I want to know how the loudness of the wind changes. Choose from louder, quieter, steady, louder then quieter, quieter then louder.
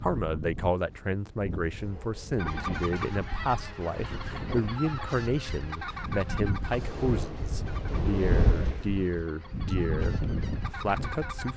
louder.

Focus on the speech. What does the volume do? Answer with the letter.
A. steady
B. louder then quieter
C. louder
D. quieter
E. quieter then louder
A.